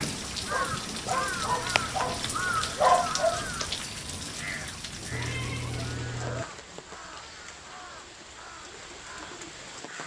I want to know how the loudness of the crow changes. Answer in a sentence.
The loudness of the crow goes down.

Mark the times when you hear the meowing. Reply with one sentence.
You can hear the meowing from 1.6 to 2.8 s and from 5.1 to 6.5 s.